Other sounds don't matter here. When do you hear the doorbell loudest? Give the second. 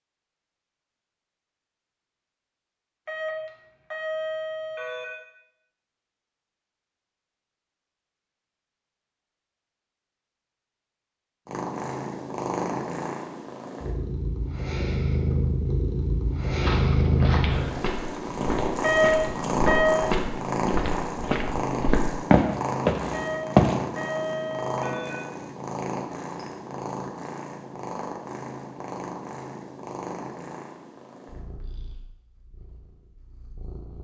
19 s.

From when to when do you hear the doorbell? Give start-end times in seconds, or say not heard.
3.0-5.0, 18.8-20.0, 23.1-25.1.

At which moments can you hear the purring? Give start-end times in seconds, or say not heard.
11.4-33.9.